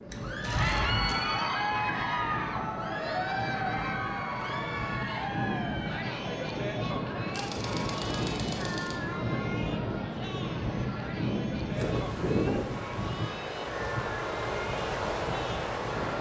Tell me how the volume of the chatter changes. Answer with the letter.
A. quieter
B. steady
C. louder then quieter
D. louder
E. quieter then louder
A.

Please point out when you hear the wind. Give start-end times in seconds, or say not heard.
0.0-16.1.